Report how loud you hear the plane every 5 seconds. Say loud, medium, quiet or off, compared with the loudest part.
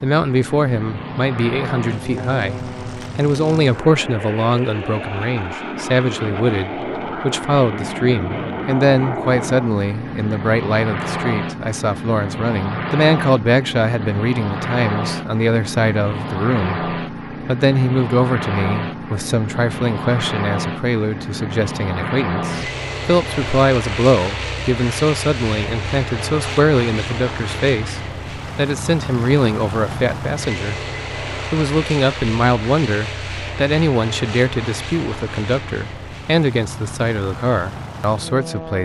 loud, loud, loud, loud, loud, loud, loud, medium.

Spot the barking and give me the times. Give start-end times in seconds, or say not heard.
not heard.